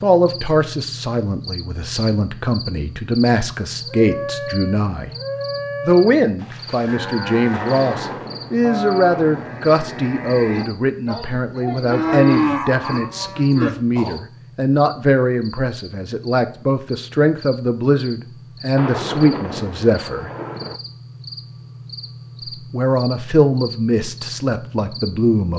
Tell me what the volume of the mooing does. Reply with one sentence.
The loudness of the mooing goes up.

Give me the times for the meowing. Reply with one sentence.
You can't hear the meowing here.